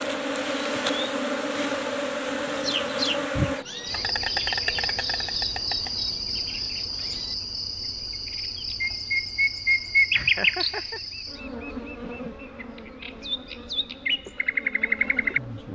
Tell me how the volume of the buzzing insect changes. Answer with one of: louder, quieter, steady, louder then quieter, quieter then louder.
quieter.